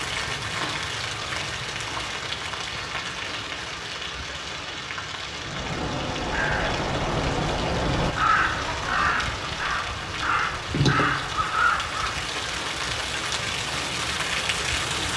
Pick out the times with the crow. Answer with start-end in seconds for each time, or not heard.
5.2-12.1.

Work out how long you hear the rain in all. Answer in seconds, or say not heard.
15 s.